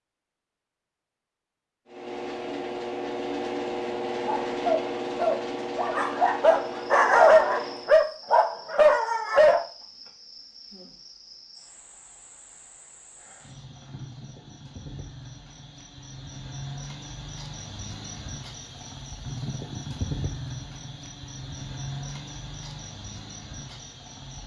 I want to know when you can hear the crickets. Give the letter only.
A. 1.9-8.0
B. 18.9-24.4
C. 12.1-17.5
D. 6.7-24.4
D.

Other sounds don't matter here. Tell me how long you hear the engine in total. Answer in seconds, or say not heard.
6 s.